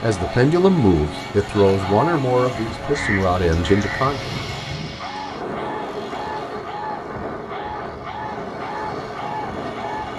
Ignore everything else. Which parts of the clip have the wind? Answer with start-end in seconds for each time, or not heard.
4.0-10.1.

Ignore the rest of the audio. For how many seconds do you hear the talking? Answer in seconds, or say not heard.
4 s.